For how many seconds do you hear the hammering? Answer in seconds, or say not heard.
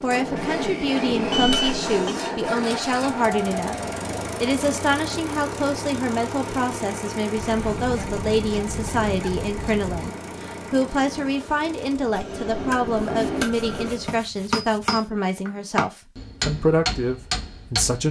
9 s.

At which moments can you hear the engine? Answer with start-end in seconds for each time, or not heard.
0.0-14.2.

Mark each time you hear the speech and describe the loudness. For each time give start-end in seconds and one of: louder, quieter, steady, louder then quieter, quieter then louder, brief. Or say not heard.
0.0-18.0 steady.